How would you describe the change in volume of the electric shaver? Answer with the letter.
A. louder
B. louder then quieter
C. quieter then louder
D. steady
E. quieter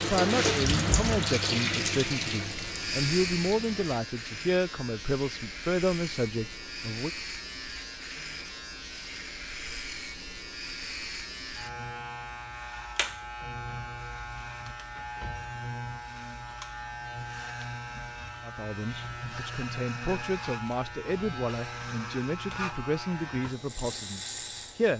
D.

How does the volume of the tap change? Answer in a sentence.
The volume of the tap goes down.